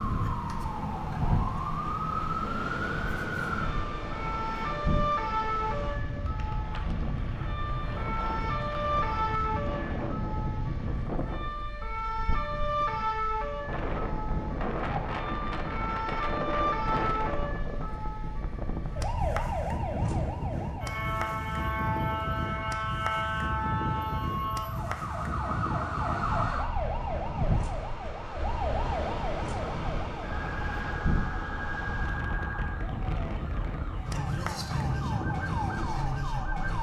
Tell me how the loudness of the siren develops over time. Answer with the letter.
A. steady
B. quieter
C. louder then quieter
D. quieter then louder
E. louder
A.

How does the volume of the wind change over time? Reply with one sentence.
The loudness of the wind stays about the same.